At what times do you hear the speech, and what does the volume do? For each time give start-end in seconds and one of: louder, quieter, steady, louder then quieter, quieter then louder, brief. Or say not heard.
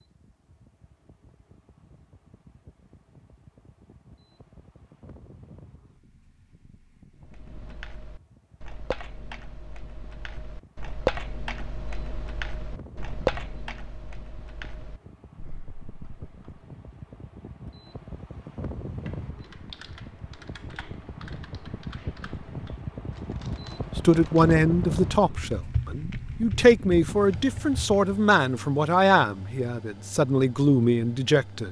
23.9-31.6 steady.